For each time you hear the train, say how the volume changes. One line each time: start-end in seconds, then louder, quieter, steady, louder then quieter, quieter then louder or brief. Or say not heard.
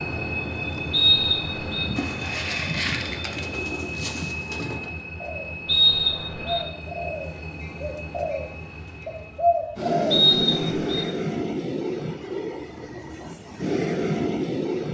0.0-14.9 quieter then louder.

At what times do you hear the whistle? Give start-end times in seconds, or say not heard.
0.9-1.9, 5.7-6.7, 10.1-11.1.